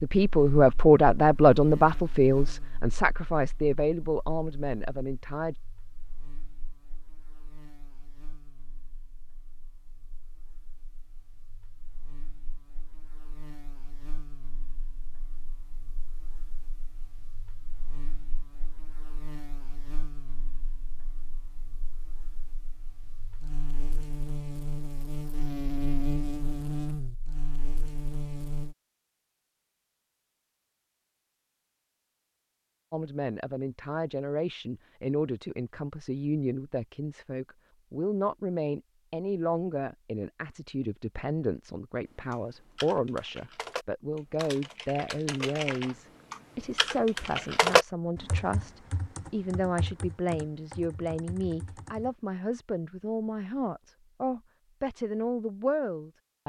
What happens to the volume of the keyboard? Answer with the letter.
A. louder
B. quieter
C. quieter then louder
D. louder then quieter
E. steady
D.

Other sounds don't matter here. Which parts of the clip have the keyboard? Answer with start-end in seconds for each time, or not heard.
42.3-52.1.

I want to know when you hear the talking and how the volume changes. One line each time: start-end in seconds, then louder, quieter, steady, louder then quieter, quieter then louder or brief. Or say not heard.
0.0-5.5 quieter
32.9-56.4 steady.